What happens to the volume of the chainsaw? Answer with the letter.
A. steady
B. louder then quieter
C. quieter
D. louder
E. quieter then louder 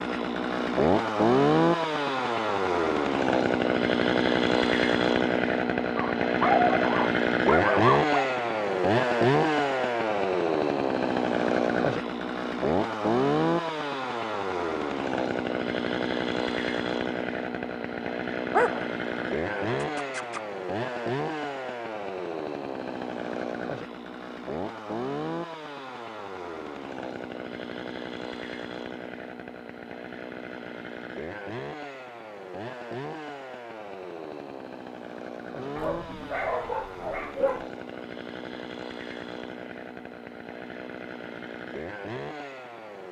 C.